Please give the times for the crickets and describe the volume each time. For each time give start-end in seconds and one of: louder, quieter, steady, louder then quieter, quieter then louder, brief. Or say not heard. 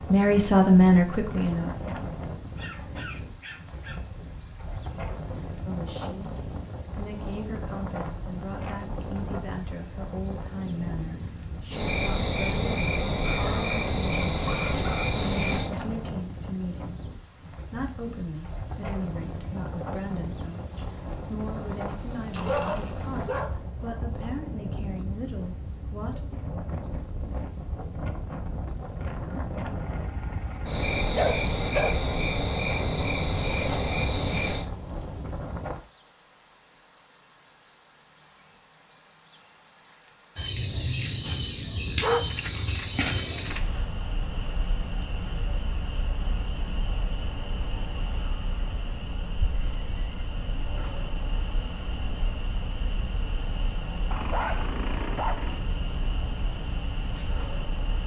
0.0-58.0 quieter.